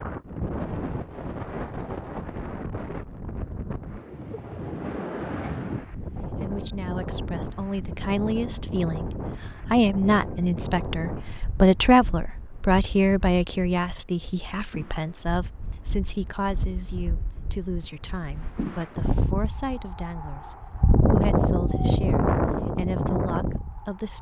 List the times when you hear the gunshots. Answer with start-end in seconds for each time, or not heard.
not heard.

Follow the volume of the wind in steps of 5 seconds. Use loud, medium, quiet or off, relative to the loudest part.
medium, medium, quiet, medium, loud.